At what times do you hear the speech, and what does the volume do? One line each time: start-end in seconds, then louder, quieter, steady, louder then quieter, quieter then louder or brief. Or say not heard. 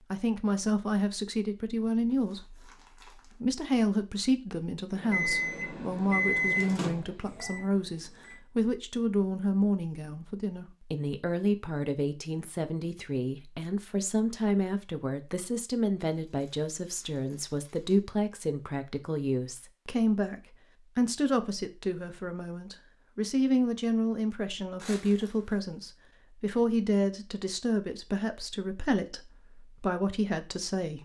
0.1-30.9 steady.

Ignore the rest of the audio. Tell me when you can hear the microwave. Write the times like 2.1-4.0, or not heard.
4.9-8.4.